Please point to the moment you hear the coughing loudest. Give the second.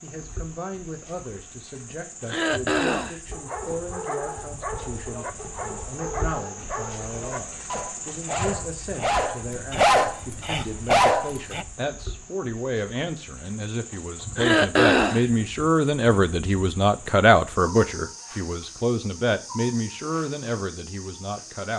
15 s.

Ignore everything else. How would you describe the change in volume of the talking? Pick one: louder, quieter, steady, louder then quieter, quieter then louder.
louder.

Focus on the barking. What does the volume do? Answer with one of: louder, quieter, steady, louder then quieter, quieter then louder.
louder.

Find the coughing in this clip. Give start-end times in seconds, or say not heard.
2.2-3.2, 14.3-15.2.